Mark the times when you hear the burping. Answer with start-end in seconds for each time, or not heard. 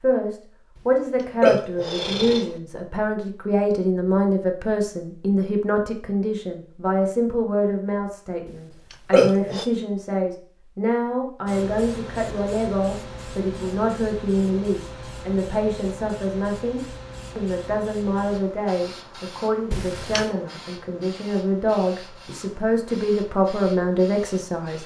1.4-2.5, 8.9-9.7, 19.7-20.3.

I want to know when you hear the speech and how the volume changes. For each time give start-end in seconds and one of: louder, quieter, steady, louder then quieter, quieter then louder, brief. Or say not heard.
0.0-24.8 steady.